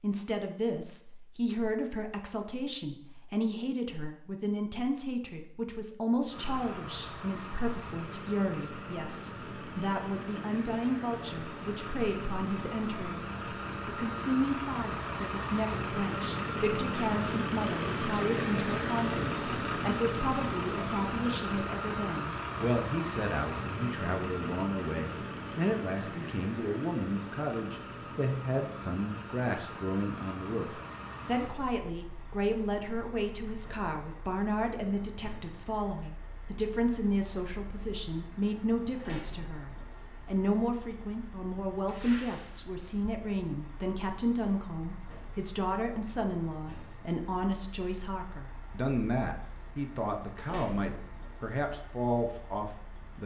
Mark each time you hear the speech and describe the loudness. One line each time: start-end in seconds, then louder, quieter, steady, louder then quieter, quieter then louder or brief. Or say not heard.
0.0-53.2 steady.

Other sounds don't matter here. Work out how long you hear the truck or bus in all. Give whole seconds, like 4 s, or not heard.
47 s.